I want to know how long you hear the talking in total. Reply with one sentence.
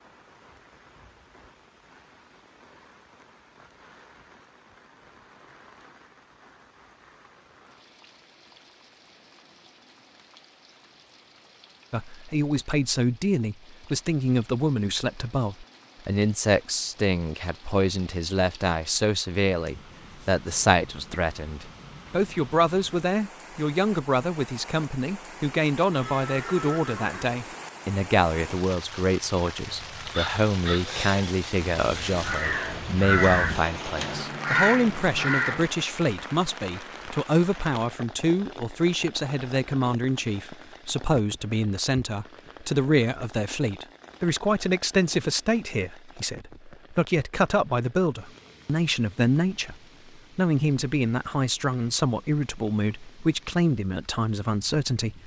You can hear the talking for 43 seconds altogether.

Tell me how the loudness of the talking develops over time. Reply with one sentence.
The volume of the talking stays about the same.